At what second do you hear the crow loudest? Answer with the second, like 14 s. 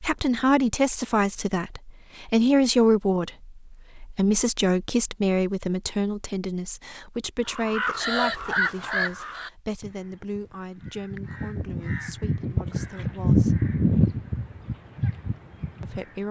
13 s.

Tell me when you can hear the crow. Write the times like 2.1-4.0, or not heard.
7.5-16.1.